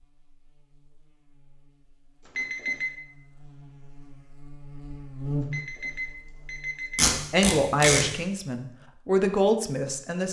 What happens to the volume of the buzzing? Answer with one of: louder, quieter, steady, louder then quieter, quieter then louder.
louder then quieter.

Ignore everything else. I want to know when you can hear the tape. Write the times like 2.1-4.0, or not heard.
7.0-8.1.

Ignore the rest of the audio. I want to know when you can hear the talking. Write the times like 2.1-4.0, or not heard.
7.3-10.2.